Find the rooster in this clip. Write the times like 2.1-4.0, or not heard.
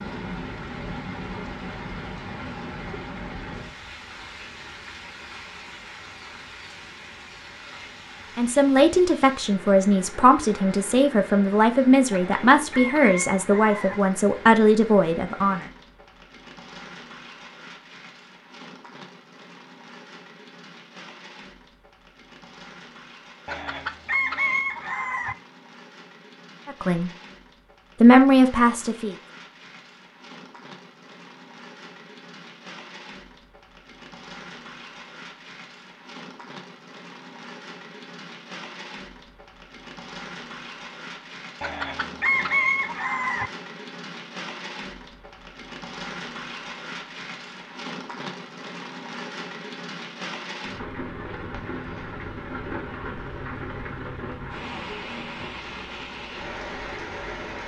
12.1-14.0, 23.4-25.4, 41.6-43.5.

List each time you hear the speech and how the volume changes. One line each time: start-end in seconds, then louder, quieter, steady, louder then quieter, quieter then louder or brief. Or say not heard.
8.3-15.7 steady
26.6-27.1 brief
28.0-29.1 brief.